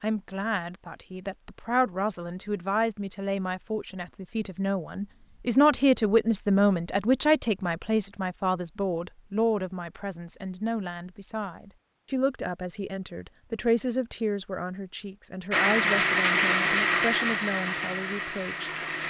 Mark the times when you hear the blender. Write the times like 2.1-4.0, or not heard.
15.5-19.0.